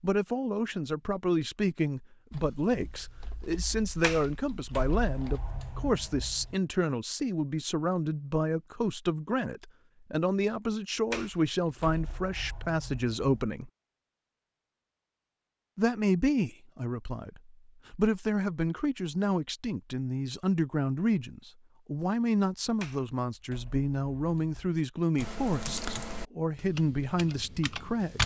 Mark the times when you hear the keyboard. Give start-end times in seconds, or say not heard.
2.3-5.4, 25.1-28.2.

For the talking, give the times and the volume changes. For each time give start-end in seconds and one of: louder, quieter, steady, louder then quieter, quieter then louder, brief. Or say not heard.
0.0-13.7 steady
15.8-28.2 steady.